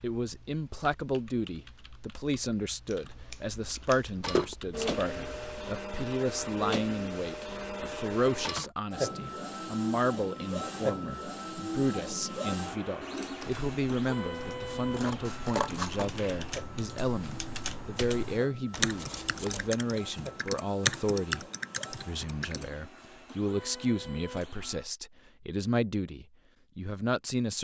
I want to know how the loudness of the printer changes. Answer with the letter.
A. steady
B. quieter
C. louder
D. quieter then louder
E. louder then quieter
B.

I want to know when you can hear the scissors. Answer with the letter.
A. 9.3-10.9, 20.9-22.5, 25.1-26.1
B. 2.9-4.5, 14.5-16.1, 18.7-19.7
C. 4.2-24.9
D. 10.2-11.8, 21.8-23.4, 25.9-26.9
B.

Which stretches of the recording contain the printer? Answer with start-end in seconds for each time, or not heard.
4.2-24.9.